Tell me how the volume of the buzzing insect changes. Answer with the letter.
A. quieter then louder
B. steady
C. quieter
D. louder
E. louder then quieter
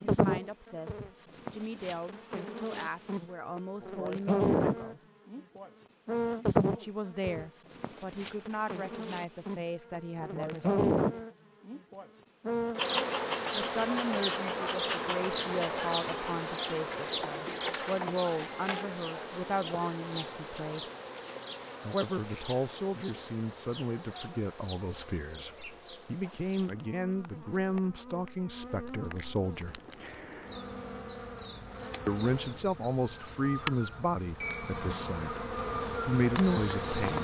A.